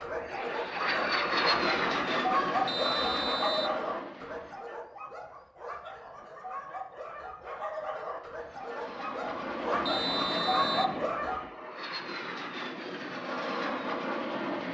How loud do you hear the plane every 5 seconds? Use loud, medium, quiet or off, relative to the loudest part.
loud, medium, loud.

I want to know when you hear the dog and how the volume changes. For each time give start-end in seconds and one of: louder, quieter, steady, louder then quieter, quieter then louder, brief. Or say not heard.
0.0-11.4 quieter then louder.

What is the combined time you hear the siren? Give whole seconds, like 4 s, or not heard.
not heard.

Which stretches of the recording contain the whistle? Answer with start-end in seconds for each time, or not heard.
2.6-3.8, 9.8-10.9.